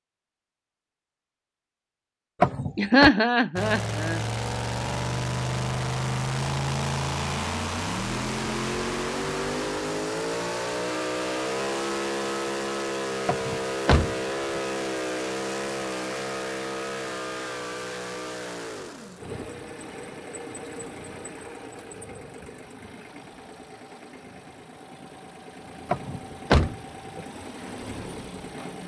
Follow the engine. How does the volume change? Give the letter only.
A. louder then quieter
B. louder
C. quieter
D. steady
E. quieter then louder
C.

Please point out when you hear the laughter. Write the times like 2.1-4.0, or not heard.
2.8-4.2.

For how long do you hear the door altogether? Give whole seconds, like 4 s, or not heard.
3 s.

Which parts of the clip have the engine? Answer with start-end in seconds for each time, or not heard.
3.5-28.8.